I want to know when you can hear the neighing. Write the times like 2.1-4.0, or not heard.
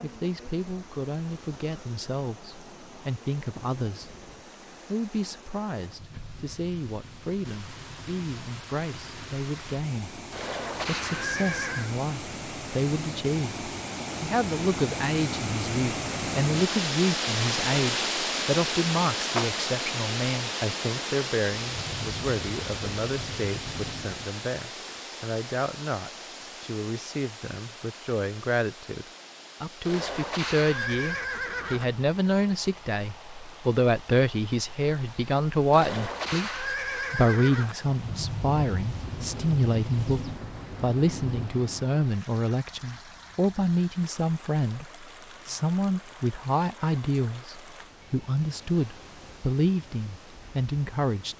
10.3-11.9, 29.9-31.9, 35.7-37.8.